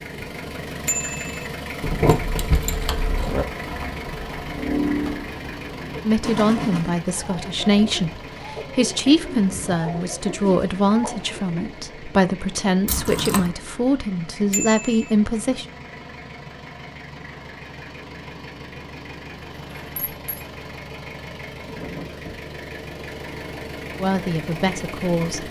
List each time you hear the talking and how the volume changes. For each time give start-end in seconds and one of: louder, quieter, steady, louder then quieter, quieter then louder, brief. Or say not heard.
6.0-15.7 steady
24.0-25.4 brief.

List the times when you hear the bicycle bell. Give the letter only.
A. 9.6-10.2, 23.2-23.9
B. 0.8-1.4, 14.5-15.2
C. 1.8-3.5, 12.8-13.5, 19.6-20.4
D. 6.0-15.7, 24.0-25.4
B.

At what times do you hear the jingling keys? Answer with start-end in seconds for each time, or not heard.
1.8-3.5, 12.8-13.5, 19.6-20.4.